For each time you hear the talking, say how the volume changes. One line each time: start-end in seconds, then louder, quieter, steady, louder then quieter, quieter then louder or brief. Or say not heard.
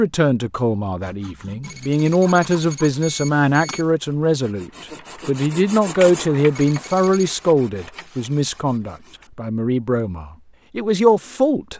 0.0-11.7 steady.